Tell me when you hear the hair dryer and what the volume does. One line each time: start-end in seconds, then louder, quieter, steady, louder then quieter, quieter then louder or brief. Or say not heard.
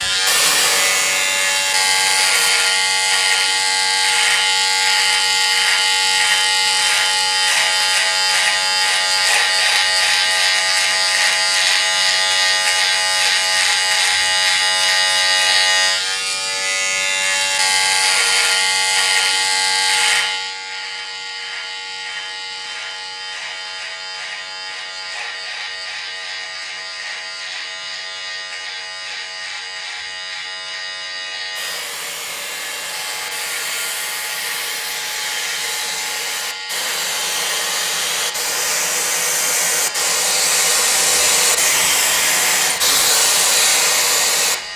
0.0-2.5 brief
31.6-44.5 louder.